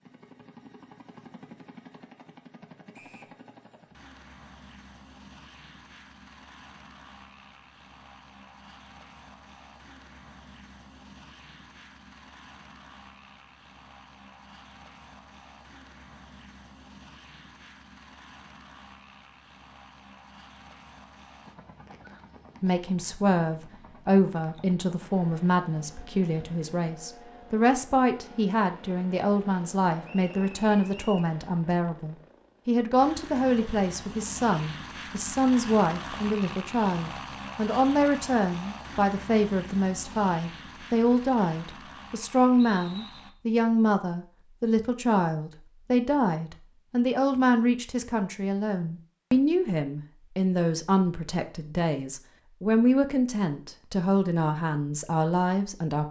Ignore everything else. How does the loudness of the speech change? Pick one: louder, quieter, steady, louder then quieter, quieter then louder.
steady.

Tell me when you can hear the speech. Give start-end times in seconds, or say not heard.
22.6-56.0.